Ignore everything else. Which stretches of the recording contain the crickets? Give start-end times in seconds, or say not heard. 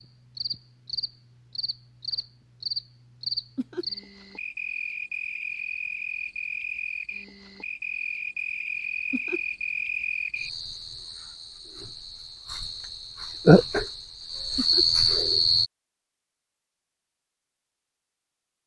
0.0-15.7.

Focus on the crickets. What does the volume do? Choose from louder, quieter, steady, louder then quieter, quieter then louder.
louder.